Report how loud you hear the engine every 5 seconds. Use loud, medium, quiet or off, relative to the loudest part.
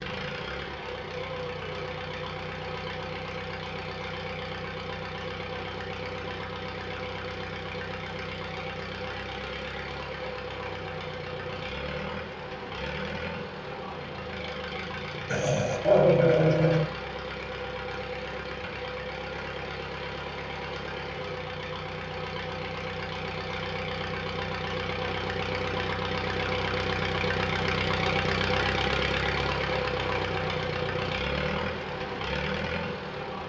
medium, medium, medium, medium, medium, loud, loud.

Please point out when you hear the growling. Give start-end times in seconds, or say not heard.
15.3-16.9.